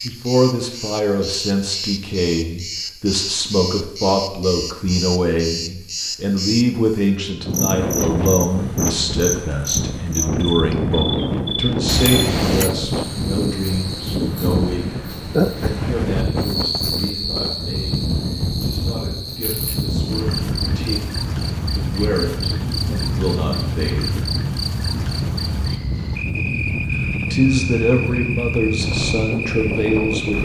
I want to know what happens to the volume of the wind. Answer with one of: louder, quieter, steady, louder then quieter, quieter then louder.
steady.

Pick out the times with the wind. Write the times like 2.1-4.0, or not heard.
7.4-30.3.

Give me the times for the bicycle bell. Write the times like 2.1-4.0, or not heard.
11.8-12.7.